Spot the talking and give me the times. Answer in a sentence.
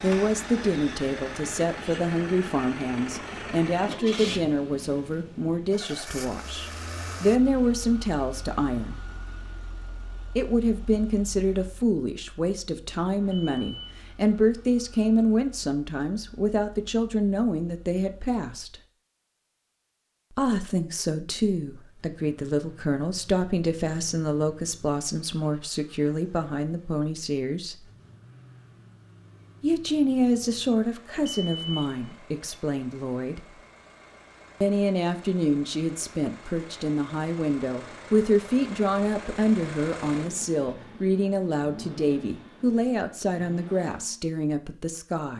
You can hear the talking from 0.0 to 8.9 s, from 10.3 to 18.8 s, from 20.3 to 27.9 s, from 29.6 to 33.5 s and from 34.6 to 45.3 s.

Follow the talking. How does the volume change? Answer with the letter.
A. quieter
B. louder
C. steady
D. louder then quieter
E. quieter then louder
C.